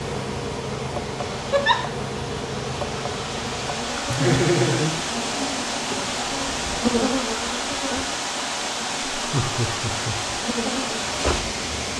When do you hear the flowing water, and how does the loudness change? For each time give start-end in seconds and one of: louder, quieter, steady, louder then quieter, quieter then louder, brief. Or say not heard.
0.0-11.9 louder.